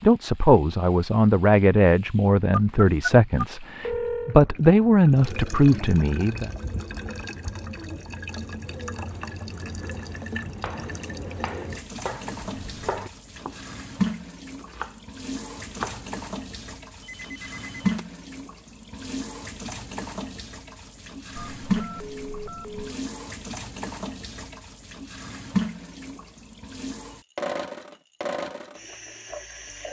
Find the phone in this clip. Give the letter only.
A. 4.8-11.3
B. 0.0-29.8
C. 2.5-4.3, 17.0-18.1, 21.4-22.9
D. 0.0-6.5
C.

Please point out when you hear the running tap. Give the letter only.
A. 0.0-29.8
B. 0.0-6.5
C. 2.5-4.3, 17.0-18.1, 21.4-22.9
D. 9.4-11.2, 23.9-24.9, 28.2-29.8
A.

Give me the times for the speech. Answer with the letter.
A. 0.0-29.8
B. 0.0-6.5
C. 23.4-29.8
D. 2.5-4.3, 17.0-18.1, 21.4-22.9
B.